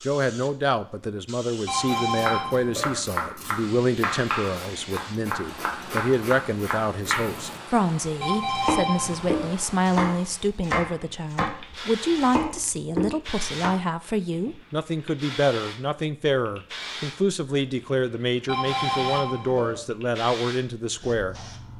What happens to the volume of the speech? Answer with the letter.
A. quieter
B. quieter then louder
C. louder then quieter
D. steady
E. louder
D.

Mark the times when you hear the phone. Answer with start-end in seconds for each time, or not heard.
1.6-3.0, 8.2-9.5, 18.4-19.8.